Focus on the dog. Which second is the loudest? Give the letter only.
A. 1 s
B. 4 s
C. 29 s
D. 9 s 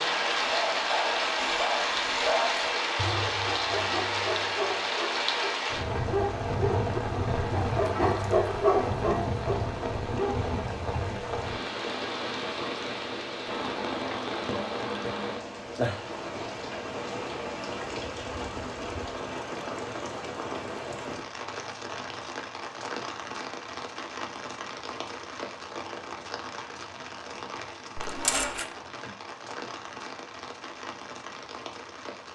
D.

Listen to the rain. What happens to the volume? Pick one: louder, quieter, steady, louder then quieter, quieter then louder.
quieter.